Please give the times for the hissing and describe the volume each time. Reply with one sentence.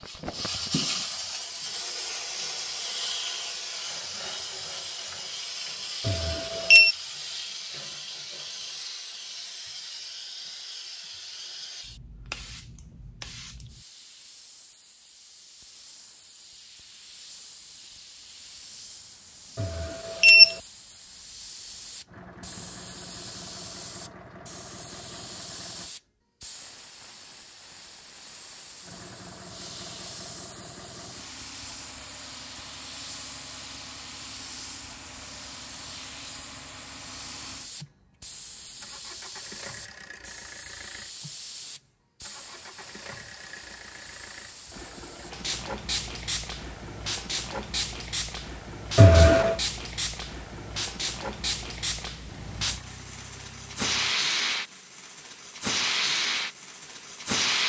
The hissing can be heard from 0.0 to 57.6 s, getting quieter then louder.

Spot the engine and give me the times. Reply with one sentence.
The engine can be heard from 22.1 to 25.9 s and from 28.8 to 54.1 s.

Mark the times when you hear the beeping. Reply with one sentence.
The beeping can be heard from 6.0 to 7.0 s, from 19.6 to 20.6 s and from 49.0 to 49.5 s.